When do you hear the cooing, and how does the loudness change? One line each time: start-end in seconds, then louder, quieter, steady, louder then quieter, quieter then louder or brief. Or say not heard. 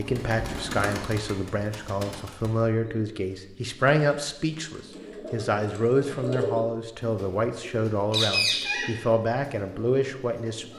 0.0-10.7 quieter then louder.